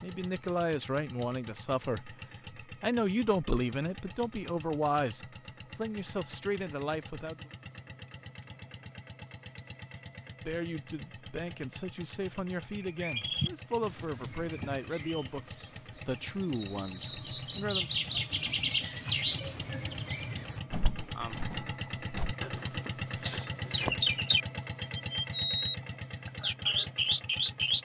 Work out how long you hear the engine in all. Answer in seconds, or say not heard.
28 s.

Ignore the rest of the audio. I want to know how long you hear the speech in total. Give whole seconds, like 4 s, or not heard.
15 s.